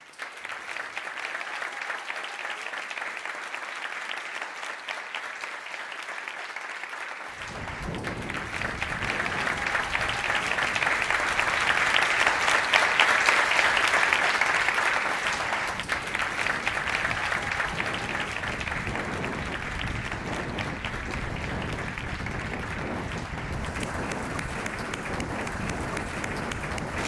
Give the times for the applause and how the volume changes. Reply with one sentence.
You can hear the applause from 0.0 to 27.0 s, getting louder then quieter.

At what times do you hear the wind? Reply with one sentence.
You can hear the wind from 7.3 to 27.0 s.